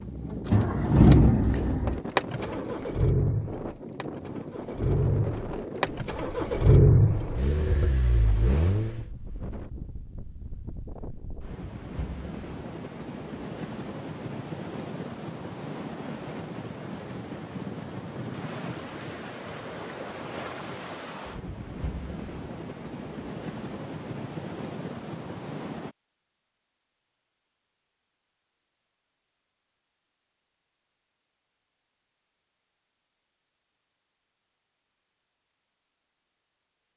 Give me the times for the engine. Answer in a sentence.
You can hear the engine from 0.0 to 9.1 s.